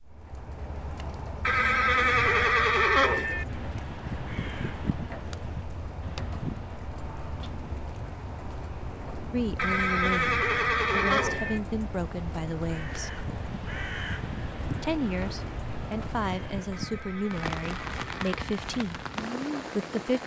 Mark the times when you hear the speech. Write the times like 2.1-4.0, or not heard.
9.3-13.1, 14.8-19.0, 19.8-20.2.